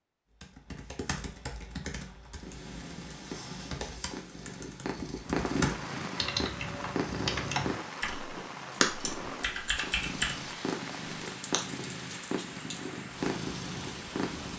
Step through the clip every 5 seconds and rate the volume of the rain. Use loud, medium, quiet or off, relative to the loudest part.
off, loud, loud.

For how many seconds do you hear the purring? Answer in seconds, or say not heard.
12 s.